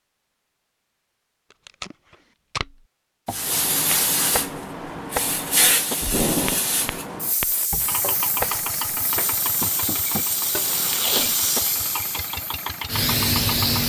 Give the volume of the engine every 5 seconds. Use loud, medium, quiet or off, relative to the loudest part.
off, loud, loud.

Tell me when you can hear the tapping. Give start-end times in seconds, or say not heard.
3.2-11.6.